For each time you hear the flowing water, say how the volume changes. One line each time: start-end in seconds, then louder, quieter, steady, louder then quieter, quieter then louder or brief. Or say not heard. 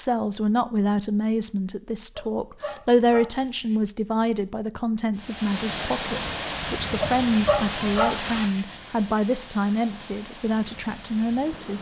5.2-11.7 quieter.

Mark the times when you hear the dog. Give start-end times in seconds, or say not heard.
2.1-3.8, 7.0-8.7.